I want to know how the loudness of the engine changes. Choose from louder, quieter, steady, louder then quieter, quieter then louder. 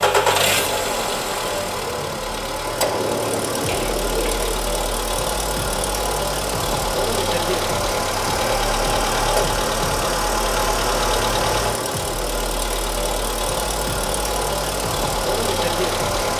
steady.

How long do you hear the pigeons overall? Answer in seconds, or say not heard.
2 s.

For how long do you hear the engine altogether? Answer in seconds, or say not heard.
16 s.